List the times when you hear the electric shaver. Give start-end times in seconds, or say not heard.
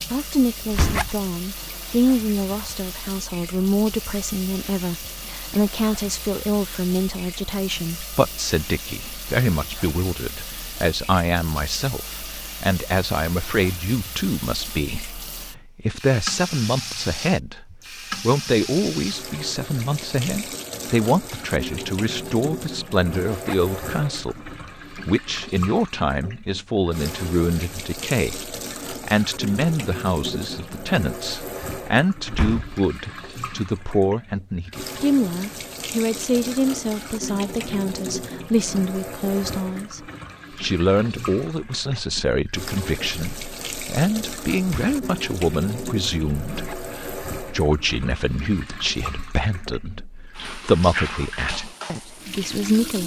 not heard.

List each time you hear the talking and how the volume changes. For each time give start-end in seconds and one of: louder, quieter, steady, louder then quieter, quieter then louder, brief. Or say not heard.
0.1-53.0 steady.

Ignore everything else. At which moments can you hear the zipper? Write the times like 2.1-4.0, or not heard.
0.8-1.2, 23.2-23.8, 46.5-47.0.